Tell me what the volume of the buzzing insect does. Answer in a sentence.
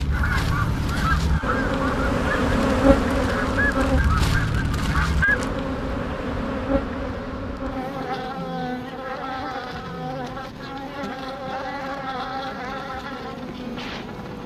The loudness of the buzzing insect goes down.